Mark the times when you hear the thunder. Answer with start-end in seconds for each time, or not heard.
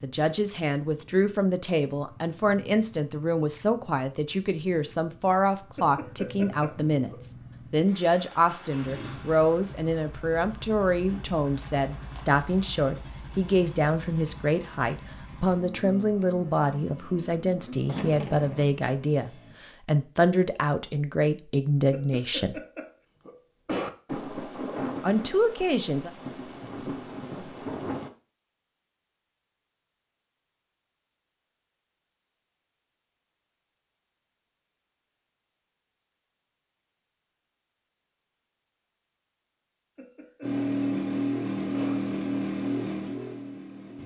17.9-18.6, 24.1-28.1.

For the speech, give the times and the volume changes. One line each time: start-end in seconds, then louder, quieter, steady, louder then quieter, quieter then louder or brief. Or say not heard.
0.0-22.6 steady
25.0-26.1 brief.